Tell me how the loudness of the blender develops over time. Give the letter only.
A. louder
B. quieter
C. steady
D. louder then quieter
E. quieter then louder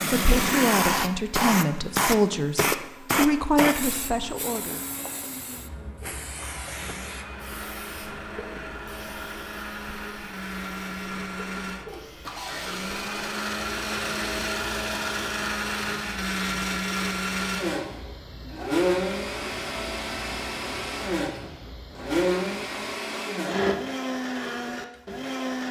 A.